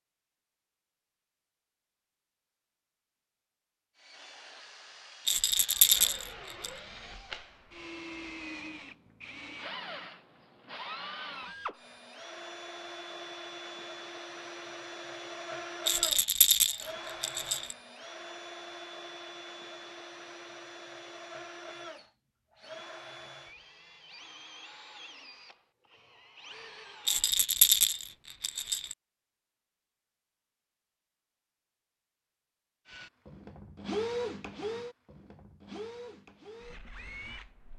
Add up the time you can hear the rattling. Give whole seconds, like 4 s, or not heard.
5 s.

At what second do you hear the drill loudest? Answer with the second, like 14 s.
34 s.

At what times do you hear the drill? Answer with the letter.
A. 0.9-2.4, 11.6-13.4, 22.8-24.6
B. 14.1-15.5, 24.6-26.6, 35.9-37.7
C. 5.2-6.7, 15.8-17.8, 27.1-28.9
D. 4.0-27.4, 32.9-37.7
D.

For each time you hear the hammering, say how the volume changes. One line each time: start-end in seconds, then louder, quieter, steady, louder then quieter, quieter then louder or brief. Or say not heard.
not heard.